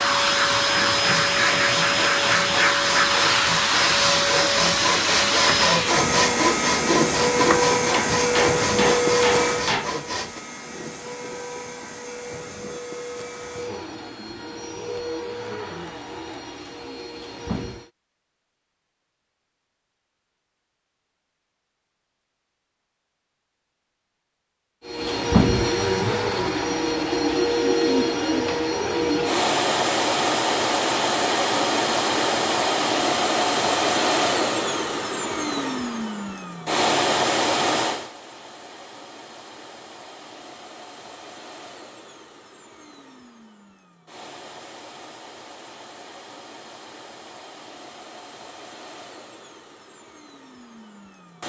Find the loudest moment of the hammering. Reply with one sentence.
The volume of the hammering peaks at 9 seconds.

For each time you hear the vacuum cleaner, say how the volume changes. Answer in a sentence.
You can hear the vacuum cleaner from 0.0 to 17.9 s, getting quieter; and from 24.9 to 51.4 s, getting quieter.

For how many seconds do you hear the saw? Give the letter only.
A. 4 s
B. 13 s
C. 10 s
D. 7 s
C.